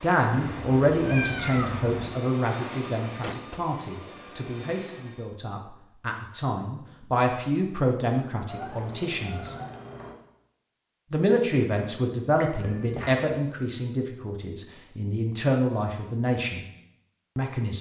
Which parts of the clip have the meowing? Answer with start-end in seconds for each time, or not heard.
0.3-2.1, 8.4-10.2, 12.4-13.2.